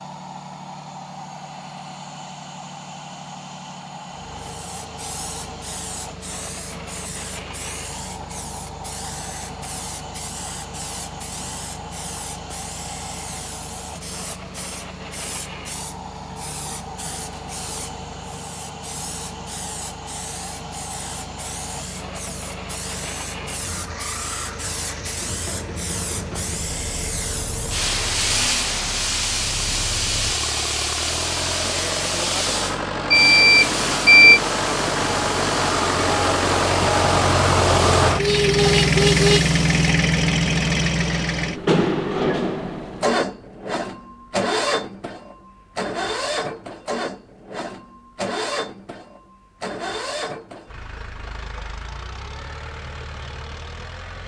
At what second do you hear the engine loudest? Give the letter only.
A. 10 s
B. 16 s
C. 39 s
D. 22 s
C.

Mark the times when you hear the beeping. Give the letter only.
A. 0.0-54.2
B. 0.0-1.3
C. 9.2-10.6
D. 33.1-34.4
D.